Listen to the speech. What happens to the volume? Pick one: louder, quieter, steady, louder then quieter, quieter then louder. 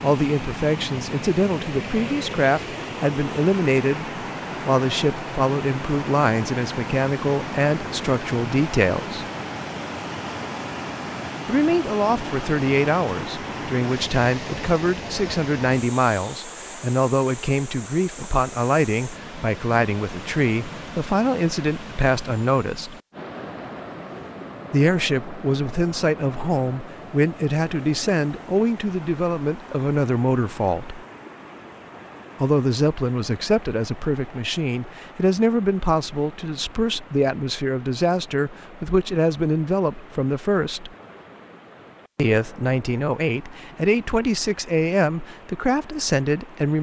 steady.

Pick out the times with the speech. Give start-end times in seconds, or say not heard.
0.0-9.2, 11.4-22.9, 24.7-31.0, 32.4-40.9, 42.1-46.7.